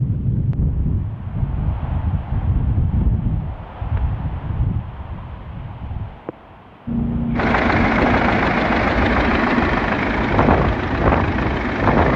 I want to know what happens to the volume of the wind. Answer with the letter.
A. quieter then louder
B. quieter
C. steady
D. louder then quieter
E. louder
A.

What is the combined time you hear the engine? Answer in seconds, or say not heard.
5 s.